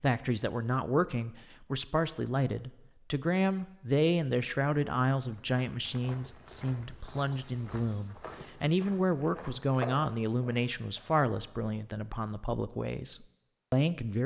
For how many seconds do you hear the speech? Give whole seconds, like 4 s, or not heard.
14 s.